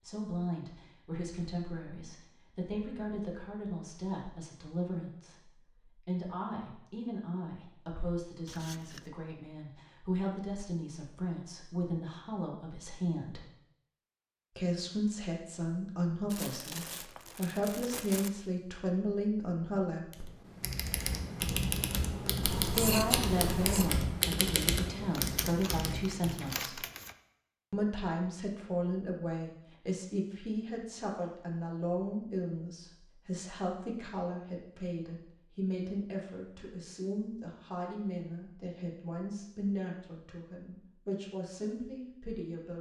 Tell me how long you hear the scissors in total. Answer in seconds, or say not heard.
2 s.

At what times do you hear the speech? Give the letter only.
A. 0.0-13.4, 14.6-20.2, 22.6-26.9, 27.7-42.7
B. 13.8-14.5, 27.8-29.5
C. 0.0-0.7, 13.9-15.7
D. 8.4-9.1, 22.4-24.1
A.